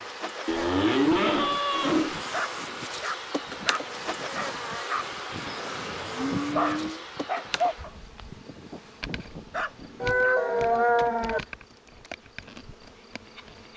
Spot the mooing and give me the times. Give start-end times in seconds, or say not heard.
0.5-2.2, 5.5-7.0, 10.0-11.4.